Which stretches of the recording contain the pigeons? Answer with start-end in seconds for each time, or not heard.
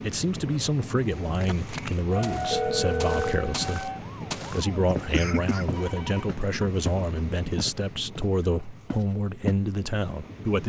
not heard.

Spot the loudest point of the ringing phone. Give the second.
3 s.